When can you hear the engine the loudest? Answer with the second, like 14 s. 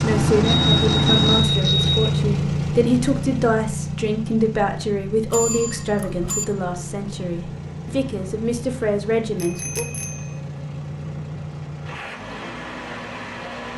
1 s.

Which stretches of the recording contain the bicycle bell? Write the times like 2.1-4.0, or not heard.
0.4-2.0, 5.2-6.5, 9.4-10.2.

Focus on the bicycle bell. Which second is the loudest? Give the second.
1 s.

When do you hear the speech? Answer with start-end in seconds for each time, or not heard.
0.0-9.8.